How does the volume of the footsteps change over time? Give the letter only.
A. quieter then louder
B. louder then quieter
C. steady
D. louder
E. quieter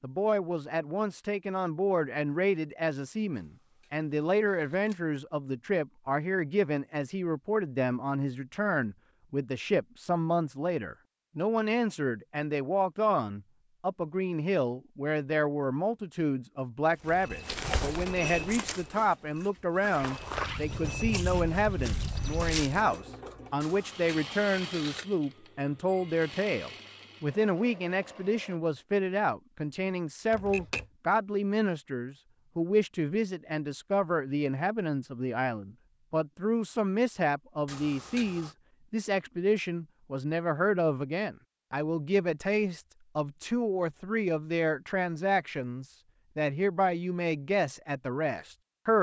A.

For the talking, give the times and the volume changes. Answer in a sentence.
You can hear the talking from 0.0 to 48.9 s, at a steady volume.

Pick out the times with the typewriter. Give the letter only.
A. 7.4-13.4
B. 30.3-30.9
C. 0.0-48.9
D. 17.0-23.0
B.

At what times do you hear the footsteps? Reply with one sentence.
You can hear the footsteps from 17.0 to 23.0 s.